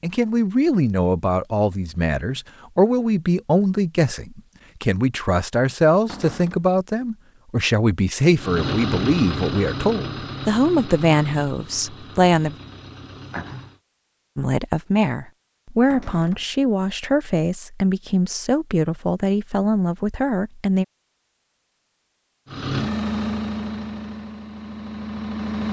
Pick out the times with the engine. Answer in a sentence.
You can hear the engine from 8.3 to 13.8 s and from 22.4 to 25.6 s.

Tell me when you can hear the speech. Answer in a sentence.
The speech can be heard from 0.0 to 12.6 s and from 14.3 to 20.9 s.